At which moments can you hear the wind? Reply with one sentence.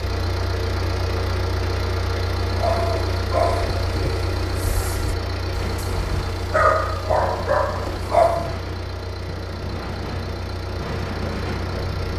The wind can be heard from 5.5 to 12.1 s.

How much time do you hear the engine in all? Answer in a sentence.
The engine can be heard for 12 seconds in total.